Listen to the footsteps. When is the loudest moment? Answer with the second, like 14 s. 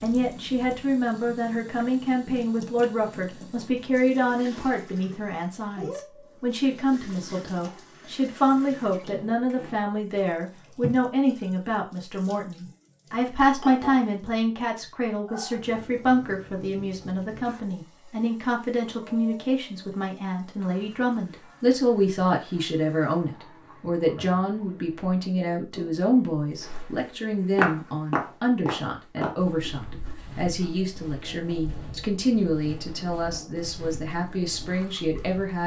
28 s.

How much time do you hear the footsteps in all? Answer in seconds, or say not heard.
9 s.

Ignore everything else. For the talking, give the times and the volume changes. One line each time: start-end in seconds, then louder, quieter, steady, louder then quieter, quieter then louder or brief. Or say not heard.
0.0-35.6 steady.